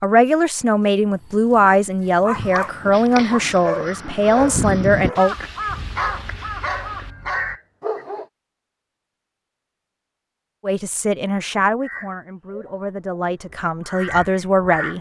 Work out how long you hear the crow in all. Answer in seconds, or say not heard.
9 s.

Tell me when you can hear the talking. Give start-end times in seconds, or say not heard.
0.0-5.3, 10.6-14.9.